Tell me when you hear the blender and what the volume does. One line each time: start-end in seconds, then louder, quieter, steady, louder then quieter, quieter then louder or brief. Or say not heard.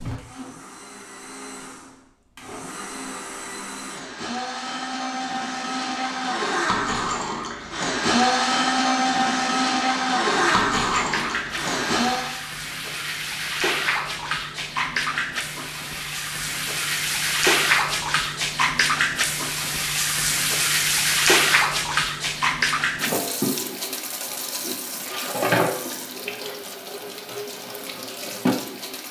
0.0-12.4 louder.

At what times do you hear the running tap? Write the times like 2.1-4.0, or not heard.
10.3-29.0.